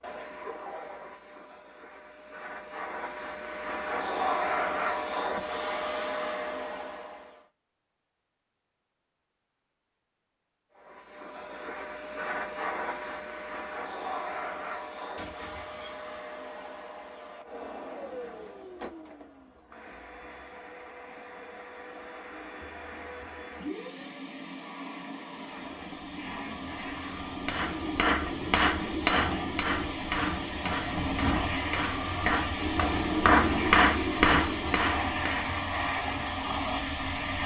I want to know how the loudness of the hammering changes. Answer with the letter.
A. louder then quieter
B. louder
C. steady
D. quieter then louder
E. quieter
D.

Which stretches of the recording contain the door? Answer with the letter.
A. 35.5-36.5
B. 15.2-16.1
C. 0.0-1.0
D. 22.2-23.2
B.